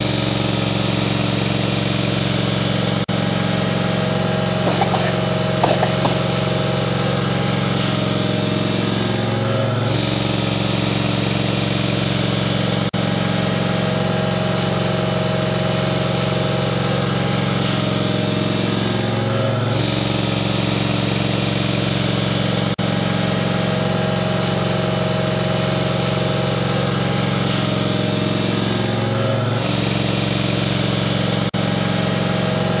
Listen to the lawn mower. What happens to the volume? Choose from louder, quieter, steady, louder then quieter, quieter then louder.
steady.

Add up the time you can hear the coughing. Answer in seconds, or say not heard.
2 s.